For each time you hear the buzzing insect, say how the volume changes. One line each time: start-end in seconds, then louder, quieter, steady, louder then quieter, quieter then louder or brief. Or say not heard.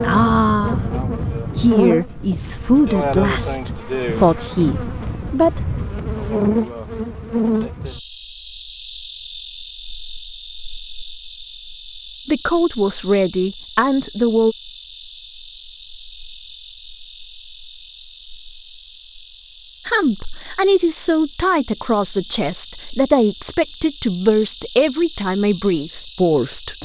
0.0-26.8 quieter.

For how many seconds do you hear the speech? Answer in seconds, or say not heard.
15 s.